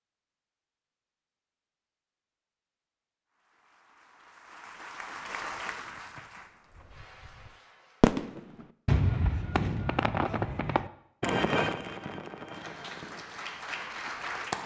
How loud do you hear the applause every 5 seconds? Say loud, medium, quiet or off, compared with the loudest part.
quiet, medium, loud.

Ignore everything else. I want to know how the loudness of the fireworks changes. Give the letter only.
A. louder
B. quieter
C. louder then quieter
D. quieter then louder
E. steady
B.